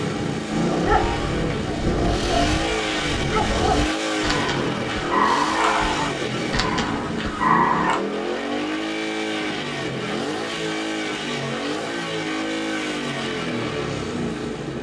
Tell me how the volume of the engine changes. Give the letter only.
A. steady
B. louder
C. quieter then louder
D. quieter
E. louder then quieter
A.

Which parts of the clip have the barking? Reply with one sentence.
You can hear the barking from 0.7 to 8.0 s.